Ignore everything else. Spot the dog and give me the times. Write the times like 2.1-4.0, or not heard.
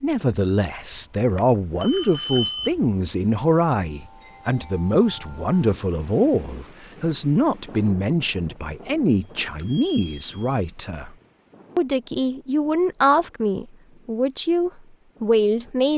not heard.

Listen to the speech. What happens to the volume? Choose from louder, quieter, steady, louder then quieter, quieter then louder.
steady.